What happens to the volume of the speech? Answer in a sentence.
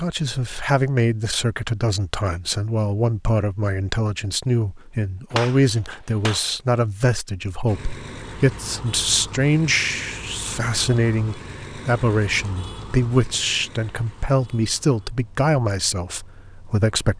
The loudness of the speech stays about the same.